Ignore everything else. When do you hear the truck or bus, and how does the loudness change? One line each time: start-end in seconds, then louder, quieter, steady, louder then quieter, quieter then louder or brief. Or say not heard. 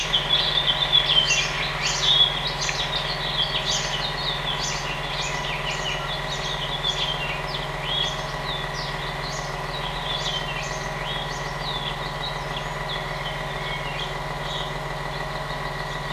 0.0-16.0 steady.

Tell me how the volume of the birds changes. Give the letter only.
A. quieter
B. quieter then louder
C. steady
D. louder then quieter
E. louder
A.